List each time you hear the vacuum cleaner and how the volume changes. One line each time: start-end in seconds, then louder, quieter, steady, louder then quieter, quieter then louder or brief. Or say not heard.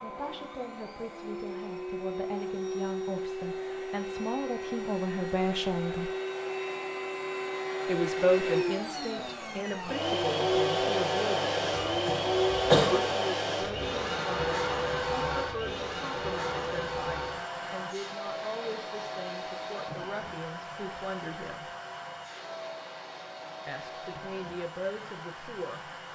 0.0-26.1 louder then quieter.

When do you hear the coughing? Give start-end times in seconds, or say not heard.
11.7-13.2.